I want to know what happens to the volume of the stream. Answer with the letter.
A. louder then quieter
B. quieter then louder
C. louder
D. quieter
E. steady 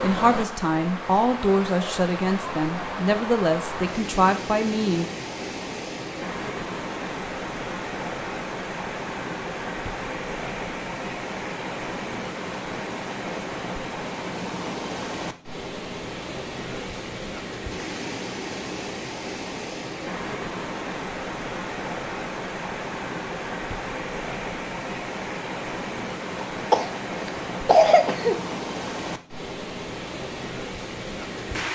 E.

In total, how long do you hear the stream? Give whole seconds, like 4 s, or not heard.
32 s.